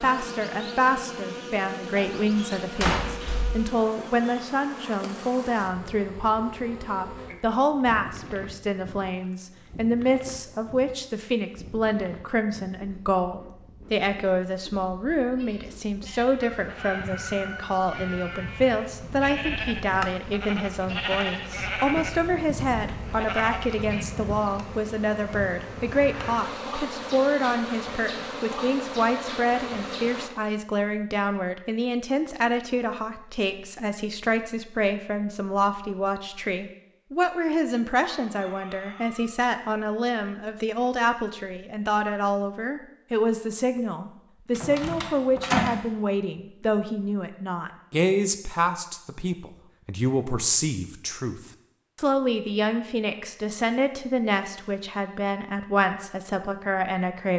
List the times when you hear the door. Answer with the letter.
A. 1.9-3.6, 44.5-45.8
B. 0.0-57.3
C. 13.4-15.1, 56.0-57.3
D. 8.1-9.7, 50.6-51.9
A.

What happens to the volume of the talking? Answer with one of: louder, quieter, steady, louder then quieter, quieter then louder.
steady.